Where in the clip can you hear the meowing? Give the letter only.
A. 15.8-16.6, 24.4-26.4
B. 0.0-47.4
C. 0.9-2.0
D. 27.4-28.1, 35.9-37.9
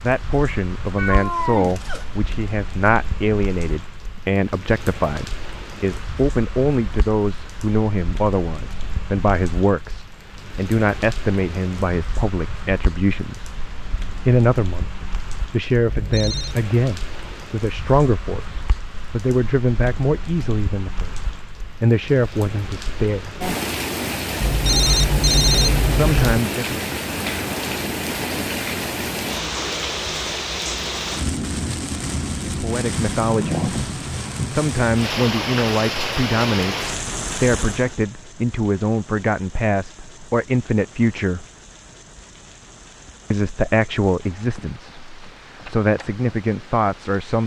C.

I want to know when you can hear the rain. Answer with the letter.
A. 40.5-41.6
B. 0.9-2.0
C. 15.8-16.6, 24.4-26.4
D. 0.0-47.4
D.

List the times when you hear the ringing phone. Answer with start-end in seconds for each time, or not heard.
15.8-16.6, 24.4-26.4.